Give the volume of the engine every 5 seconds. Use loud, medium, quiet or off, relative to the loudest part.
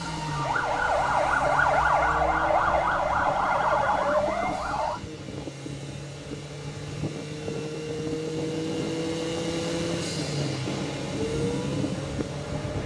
medium, loud, loud.